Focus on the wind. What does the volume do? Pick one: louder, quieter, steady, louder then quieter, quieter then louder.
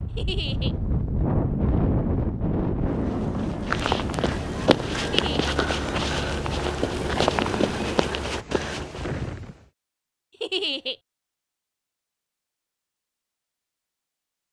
quieter.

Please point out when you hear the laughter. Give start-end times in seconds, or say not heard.
0.1-0.8, 5.0-5.6, 10.4-10.9.